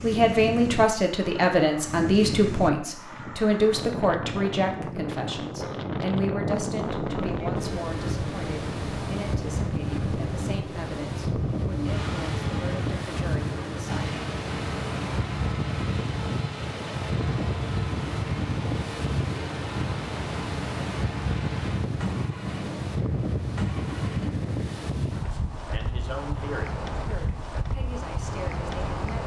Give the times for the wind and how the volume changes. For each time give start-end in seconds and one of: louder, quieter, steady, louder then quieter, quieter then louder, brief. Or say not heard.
0.0-29.2 steady.